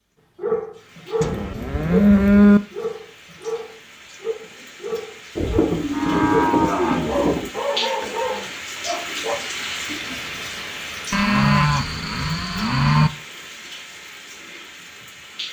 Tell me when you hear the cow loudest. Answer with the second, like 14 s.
2 s.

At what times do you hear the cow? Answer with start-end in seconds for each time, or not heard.
1.2-2.6, 5.3-7.5, 11.1-13.1.